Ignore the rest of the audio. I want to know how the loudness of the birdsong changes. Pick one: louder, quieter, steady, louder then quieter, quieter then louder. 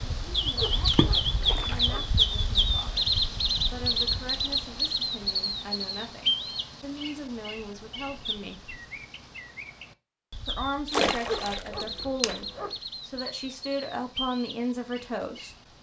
quieter.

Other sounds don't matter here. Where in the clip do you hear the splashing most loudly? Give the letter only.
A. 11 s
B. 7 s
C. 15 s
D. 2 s
A.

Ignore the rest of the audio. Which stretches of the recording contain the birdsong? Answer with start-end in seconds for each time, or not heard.
0.0-15.7.